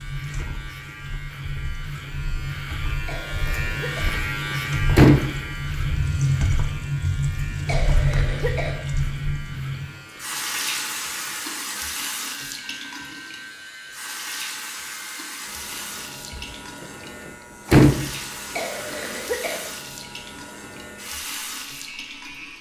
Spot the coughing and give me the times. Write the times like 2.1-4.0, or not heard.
3.0-4.2, 7.7-8.8, 18.5-19.7.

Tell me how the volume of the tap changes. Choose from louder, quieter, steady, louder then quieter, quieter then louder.
louder then quieter.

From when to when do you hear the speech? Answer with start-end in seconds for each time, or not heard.
not heard.